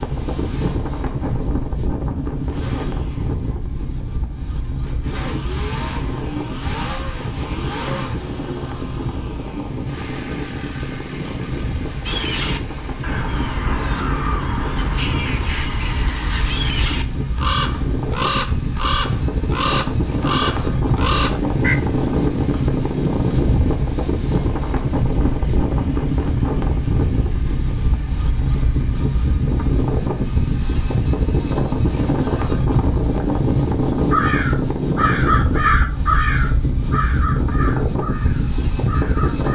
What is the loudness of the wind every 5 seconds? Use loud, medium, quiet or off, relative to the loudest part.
medium, medium, medium, medium, loud, loud, loud, loud.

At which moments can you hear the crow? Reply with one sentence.
The crow can be heard from 12.1 to 21.8 s and from 34.0 to 39.5 s.